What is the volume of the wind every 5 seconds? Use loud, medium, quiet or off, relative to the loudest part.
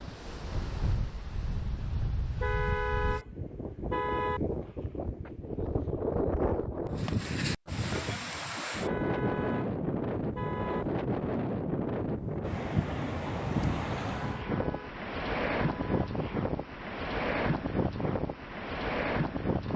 medium, loud, loud, loud.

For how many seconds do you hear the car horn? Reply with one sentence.
The car horn can be heard for 6 seconds in total.